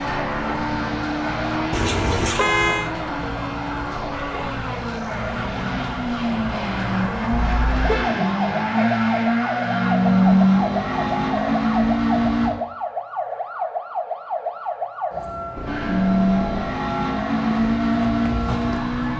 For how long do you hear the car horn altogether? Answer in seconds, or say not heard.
3 s.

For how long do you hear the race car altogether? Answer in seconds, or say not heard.
16 s.